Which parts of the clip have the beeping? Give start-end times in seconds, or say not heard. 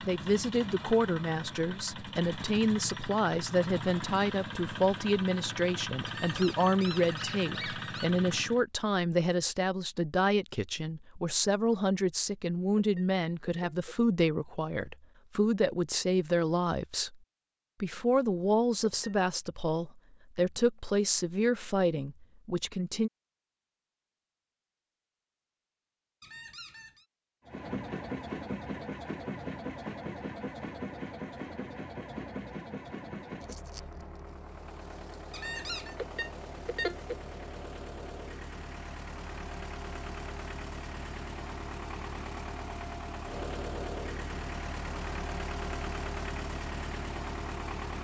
12.8-13.9, 18.8-19.2, 36.0-37.1.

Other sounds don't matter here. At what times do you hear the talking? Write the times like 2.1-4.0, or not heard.
0.1-17.1, 17.8-23.1.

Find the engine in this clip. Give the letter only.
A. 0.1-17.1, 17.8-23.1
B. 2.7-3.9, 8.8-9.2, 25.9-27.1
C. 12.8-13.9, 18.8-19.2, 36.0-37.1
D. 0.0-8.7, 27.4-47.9
D.